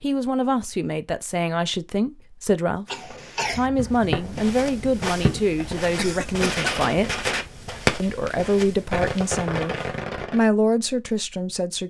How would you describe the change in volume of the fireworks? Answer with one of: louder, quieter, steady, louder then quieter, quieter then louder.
louder then quieter.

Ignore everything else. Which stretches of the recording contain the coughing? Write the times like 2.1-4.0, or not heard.
2.9-3.7, 6.0-6.9.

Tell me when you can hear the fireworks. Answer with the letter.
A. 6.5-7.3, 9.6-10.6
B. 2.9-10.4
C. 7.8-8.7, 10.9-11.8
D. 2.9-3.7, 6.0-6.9
B.